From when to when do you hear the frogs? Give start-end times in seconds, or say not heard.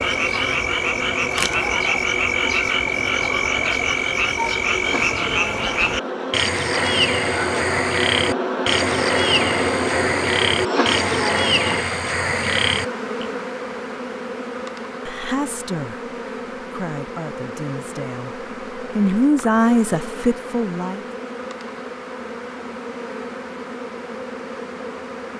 0.0-13.2.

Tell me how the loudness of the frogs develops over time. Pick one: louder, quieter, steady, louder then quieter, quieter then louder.
steady.